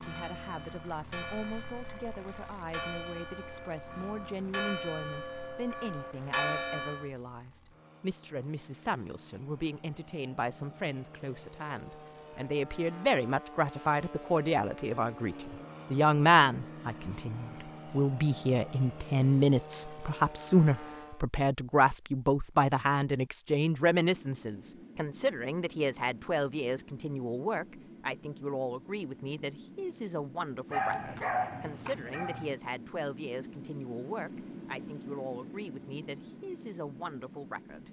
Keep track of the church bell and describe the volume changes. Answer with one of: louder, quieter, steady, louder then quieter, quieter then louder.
louder.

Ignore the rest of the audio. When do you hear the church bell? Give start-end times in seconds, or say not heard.
0.0-7.1.